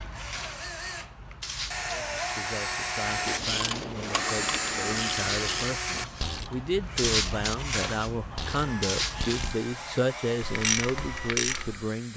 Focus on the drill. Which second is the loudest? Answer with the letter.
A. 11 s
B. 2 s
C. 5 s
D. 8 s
C.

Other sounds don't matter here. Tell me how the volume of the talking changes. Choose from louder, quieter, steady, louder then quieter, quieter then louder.
louder.